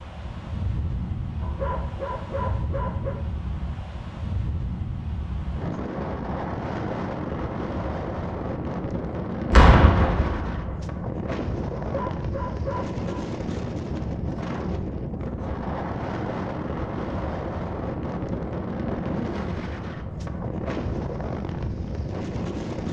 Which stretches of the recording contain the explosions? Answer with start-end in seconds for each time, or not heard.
9.5-10.8.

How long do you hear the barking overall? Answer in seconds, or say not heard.
3 s.